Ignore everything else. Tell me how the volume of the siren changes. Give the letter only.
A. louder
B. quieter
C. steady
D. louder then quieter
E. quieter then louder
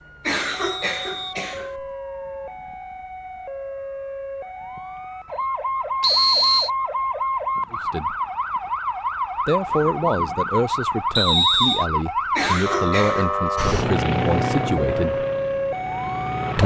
A.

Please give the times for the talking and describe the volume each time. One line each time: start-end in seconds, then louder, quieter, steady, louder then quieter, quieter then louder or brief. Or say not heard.
7.7-8.2 brief
9.4-15.2 steady.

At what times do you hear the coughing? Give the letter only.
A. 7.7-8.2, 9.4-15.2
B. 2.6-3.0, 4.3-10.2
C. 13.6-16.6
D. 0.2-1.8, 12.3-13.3
D.